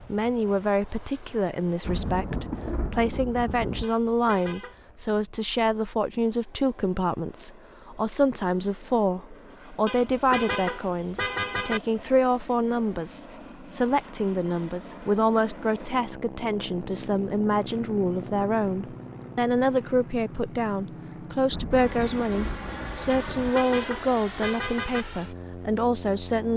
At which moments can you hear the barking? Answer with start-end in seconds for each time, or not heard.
not heard.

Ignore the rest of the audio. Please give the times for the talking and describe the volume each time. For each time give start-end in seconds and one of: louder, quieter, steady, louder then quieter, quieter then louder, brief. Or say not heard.
0.0-26.5 steady.